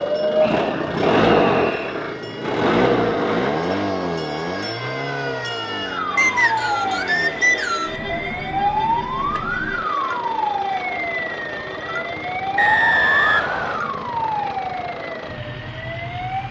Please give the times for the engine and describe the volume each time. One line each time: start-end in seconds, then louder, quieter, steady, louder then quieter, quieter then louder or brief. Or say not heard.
0.0-16.4 quieter.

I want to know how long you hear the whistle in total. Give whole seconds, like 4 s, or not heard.
5 s.